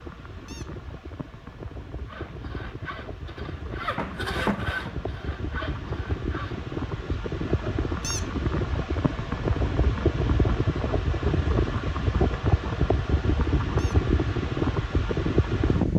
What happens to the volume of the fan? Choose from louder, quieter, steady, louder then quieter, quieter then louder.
louder.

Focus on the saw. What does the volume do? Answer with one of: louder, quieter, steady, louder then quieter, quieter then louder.
louder then quieter.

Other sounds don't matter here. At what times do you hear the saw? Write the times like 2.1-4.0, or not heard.
2.0-7.8.